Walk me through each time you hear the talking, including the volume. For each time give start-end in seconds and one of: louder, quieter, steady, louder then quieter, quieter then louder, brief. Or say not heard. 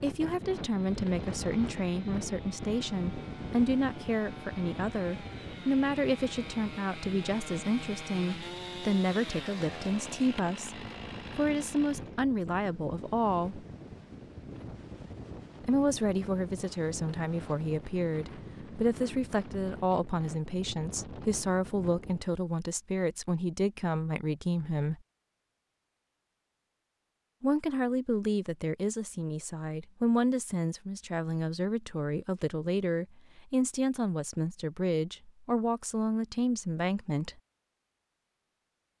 0.0-13.7 steady
15.6-25.0 steady
27.4-37.4 steady.